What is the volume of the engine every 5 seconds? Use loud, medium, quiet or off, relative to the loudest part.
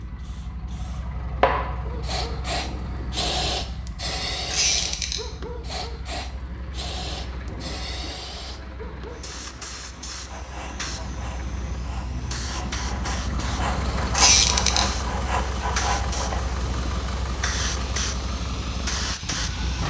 medium, medium, loud, loud.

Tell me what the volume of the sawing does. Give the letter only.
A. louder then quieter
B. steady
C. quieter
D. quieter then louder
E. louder
E.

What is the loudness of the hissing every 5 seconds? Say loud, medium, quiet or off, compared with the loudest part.
loud, medium, medium, loud.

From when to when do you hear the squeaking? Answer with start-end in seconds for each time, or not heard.
4.5-5.2, 14.2-14.8.